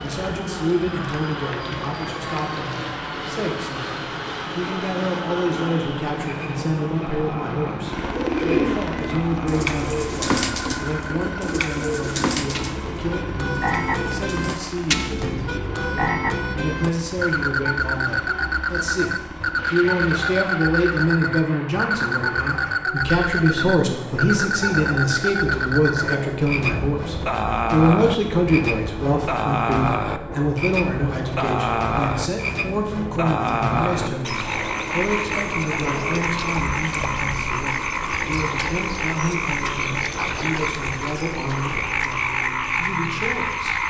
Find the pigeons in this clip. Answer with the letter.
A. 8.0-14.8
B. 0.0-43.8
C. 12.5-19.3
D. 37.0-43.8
A.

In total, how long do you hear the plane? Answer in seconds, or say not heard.
44 s.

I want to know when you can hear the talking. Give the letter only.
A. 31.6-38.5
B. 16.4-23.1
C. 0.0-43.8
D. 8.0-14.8
C.